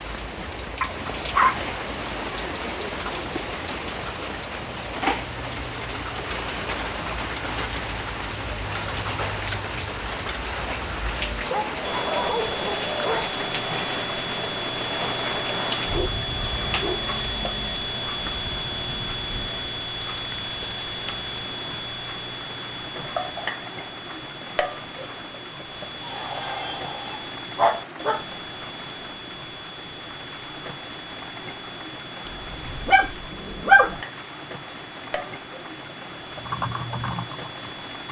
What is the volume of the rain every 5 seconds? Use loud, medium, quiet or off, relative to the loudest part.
loud, loud, loud, medium, medium, medium, medium, medium.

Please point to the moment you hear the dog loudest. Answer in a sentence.
The volume of the dog peaks at 34 seconds.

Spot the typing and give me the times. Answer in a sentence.
The typing can be heard from 36.4 to 38.0 s.